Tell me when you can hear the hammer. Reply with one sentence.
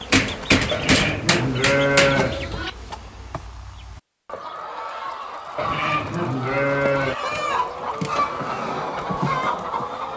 The hammer can be heard from 0.1 to 2.2 s.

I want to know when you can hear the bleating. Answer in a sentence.
The bleating can be heard from 0.7 to 2.7 s and from 5.5 to 7.2 s.